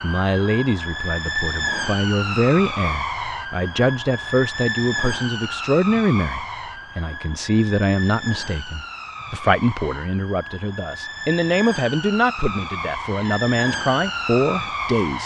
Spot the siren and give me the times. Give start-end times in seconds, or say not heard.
0.0-15.2.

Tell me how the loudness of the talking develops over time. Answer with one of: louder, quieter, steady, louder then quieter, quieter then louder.
steady.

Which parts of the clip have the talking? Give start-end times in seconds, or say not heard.
0.0-15.2.